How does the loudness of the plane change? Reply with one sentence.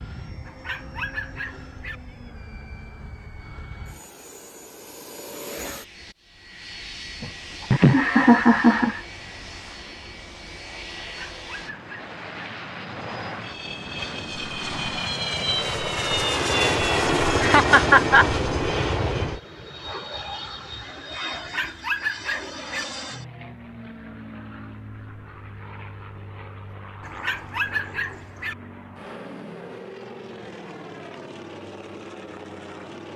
The loudness of the plane goes up, then down.